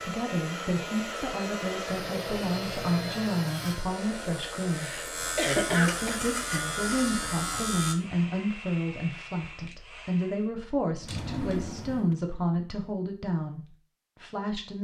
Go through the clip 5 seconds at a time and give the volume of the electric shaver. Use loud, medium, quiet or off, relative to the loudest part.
medium, loud, off.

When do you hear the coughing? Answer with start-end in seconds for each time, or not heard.
4.8-6.2.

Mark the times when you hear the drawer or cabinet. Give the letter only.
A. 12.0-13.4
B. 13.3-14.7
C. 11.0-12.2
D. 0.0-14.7
C.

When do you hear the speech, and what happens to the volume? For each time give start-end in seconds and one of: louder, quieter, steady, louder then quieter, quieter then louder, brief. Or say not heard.
0.0-14.7 steady.